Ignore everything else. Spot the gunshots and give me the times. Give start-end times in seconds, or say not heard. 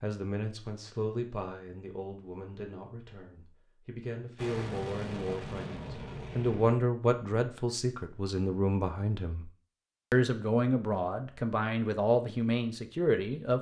not heard.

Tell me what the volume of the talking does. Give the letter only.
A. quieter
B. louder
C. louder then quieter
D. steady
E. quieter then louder
B.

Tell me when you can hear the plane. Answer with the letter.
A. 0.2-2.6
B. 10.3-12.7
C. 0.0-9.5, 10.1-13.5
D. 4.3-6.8
D.